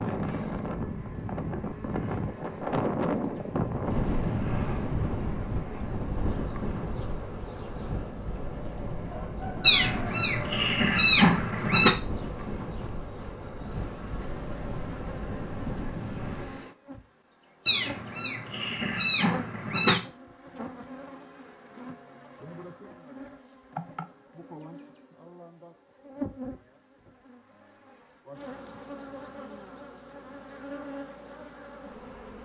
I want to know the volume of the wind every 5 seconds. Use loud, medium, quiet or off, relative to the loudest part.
loud, medium, medium, medium, off, off, off.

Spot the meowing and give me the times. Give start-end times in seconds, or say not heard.
9.6-11.9, 17.6-20.0.